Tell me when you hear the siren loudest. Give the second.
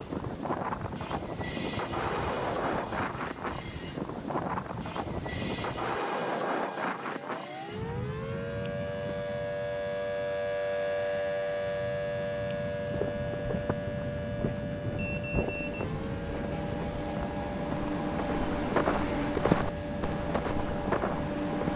11 s.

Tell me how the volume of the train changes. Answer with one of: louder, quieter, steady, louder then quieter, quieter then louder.
quieter then louder.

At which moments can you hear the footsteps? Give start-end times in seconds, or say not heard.
12.8-21.7.